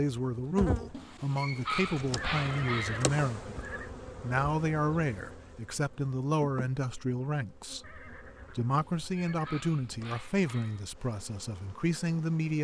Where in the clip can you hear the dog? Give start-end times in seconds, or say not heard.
0.9-3.0, 8.7-10.9.